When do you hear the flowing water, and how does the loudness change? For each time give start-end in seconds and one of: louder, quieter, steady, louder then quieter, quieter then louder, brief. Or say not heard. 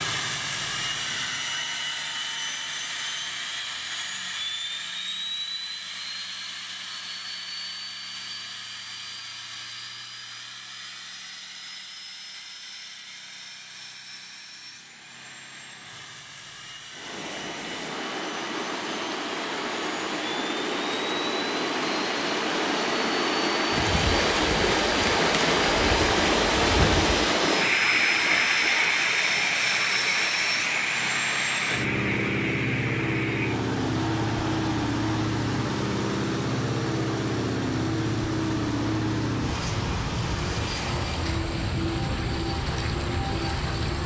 16.9-44.0 louder then quieter.